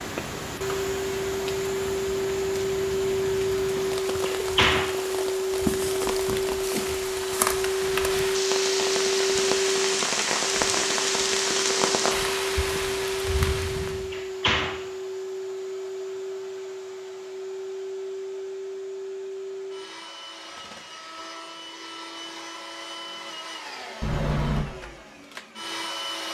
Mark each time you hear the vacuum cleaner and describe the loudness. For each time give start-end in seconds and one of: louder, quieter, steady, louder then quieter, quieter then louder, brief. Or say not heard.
0.0-26.3 quieter.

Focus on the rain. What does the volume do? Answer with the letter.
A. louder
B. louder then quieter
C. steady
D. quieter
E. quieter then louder
A.